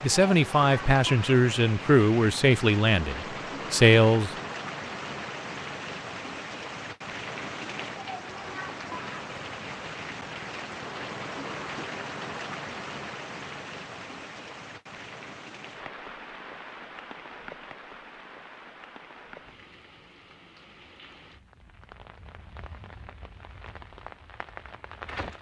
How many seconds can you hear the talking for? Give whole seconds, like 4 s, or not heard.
4 s.